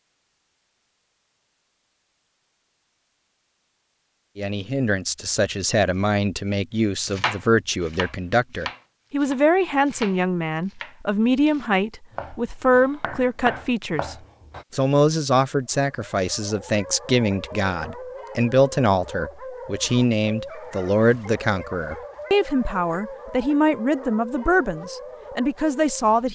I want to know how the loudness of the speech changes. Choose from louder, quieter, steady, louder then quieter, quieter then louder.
steady.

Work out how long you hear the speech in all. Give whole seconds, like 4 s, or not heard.
22 s.